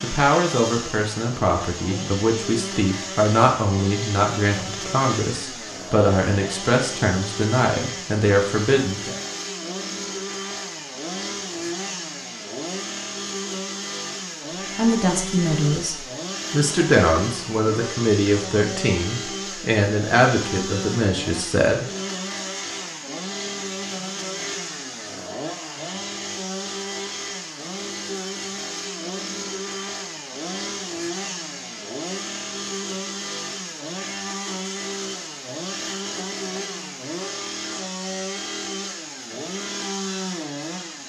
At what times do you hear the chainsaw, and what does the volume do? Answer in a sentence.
You can hear the chainsaw from 0.0 to 41.0 s, at a steady volume.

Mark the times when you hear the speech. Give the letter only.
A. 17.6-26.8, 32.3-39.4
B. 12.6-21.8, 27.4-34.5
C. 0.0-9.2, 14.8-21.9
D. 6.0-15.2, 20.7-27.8
C.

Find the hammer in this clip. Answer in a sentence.
The hammer can't be heard in this clip.